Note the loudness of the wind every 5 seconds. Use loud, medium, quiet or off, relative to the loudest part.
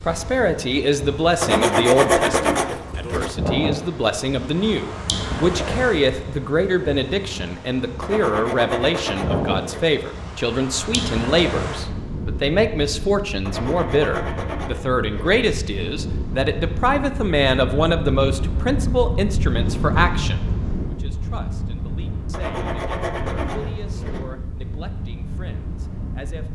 loud, loud, loud, loud, loud, medium.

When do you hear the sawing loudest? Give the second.
2 s.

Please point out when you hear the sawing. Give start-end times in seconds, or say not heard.
1.4-3.3, 8.0-9.8, 13.4-15.3, 22.3-24.2.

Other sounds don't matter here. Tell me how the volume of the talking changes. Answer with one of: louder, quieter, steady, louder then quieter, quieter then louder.
quieter.